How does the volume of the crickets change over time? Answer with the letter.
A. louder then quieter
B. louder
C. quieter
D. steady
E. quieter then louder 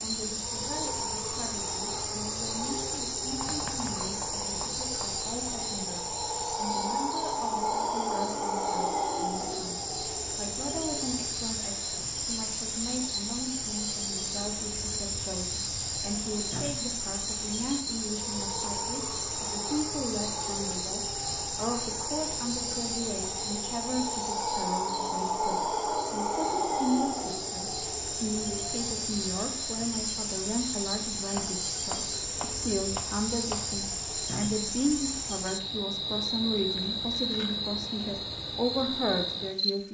D.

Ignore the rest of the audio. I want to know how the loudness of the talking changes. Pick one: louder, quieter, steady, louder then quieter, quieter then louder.
louder.